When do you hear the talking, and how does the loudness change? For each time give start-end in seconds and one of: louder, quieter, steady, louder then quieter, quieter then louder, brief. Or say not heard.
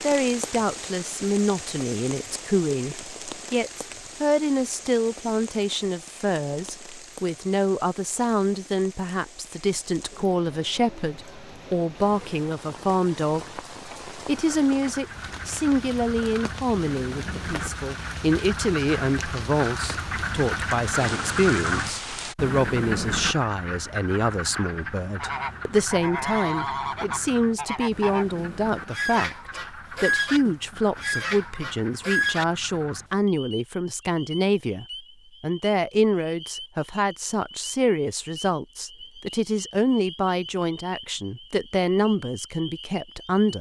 0.0-43.5 steady.